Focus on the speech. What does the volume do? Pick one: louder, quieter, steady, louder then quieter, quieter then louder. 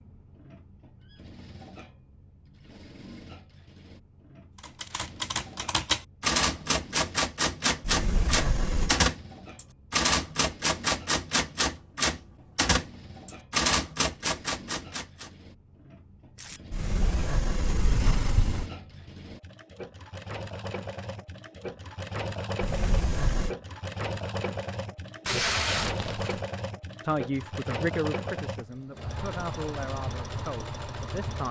quieter.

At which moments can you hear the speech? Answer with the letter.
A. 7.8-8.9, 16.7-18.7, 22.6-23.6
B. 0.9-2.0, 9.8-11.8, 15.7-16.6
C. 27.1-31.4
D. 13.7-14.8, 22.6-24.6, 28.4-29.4
C.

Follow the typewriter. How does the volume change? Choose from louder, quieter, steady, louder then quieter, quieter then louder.
steady.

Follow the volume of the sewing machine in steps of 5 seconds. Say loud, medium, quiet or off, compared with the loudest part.
quiet, quiet, quiet, medium, loud, loud, loud.